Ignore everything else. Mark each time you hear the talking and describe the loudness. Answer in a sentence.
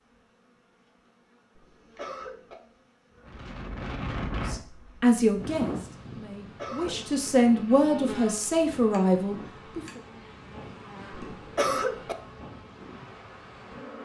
The talking can be heard from 4.3 to 10.0 s, getting quieter then louder.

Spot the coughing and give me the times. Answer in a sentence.
The coughing can be heard from 1.6 to 2.5 s, from 6.4 to 7.1 s and from 11.2 to 12.2 s.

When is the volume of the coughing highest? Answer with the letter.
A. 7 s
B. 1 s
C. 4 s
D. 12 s
D.